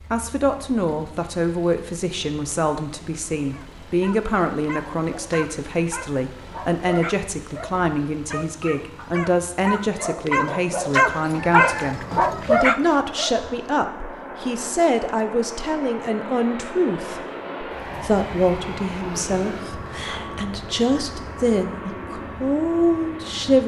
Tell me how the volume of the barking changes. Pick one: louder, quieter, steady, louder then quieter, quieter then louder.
louder.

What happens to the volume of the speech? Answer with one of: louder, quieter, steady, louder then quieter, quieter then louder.
steady.